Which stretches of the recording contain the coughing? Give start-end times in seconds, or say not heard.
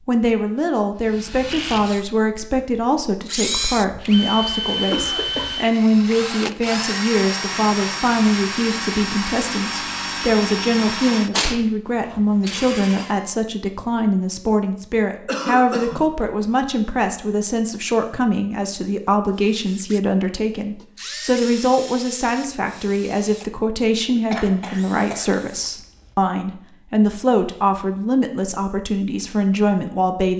4.9-5.5, 15.2-16.1, 24.3-26.1.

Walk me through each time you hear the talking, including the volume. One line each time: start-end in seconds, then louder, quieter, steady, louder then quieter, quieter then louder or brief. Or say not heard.
0.1-30.3 steady.